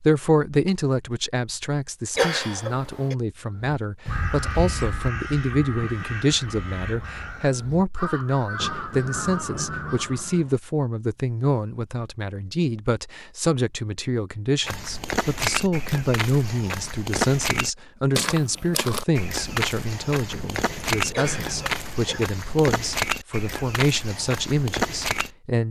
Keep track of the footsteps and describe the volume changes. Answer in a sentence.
The volume of the footsteps stays about the same.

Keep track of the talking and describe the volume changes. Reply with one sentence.
The loudness of the talking stays about the same.